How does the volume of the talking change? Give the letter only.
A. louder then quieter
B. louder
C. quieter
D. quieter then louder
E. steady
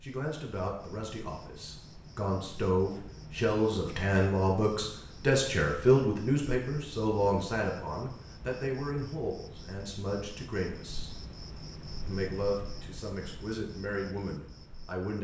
A.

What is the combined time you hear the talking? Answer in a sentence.
The talking can be heard for 14 seconds in total.